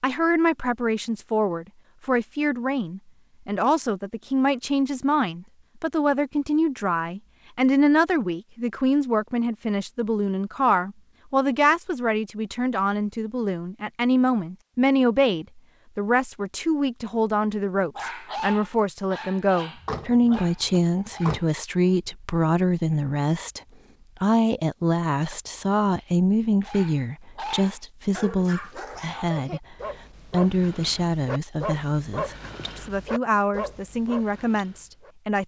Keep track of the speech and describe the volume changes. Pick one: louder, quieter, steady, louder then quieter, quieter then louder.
steady.